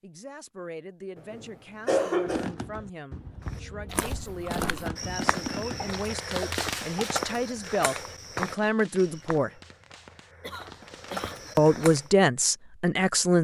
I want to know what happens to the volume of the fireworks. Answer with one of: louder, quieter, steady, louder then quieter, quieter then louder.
louder then quieter.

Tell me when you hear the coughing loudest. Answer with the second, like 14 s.
2 s.